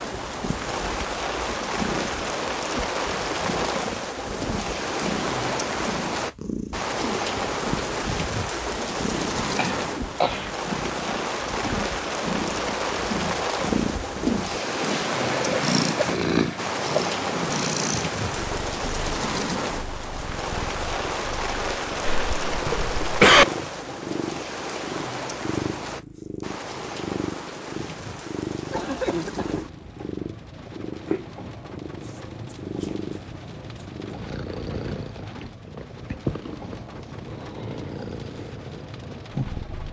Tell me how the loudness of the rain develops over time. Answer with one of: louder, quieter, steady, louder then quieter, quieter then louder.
quieter.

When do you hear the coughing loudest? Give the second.
23 s.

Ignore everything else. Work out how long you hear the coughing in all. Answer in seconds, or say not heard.
3 s.